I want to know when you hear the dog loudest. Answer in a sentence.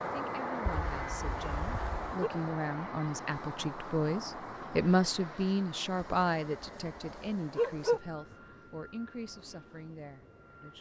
The volume of the dog peaks at 8 seconds.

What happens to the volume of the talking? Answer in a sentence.
The volume of the talking goes up, then down.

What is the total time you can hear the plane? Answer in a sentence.
The plane can be heard for 11 seconds in total.